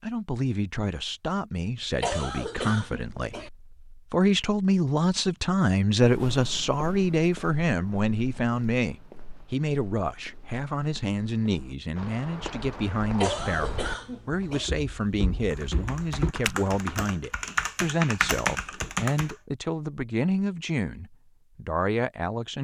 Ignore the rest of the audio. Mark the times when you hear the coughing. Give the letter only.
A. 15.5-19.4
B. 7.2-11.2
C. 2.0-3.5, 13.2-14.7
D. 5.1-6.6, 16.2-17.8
C.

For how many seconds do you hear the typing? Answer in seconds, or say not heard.
4 s.